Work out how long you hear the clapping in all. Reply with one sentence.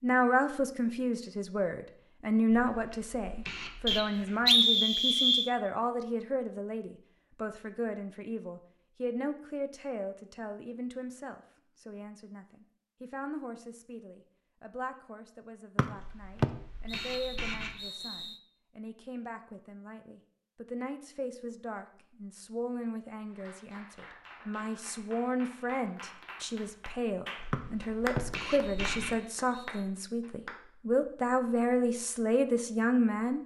The clapping can be heard for 7 seconds in total.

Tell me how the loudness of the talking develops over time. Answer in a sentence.
The loudness of the talking goes down, then up.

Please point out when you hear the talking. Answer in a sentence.
You can hear the talking from 0.0 to 33.4 s.